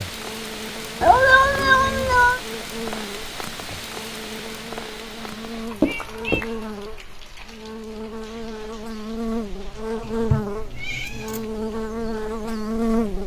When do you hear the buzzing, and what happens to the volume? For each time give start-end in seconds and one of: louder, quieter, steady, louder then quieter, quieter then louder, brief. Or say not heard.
0.0-13.2 louder.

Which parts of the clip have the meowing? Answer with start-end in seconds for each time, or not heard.
1.0-2.4, 5.8-6.5, 10.0-11.4.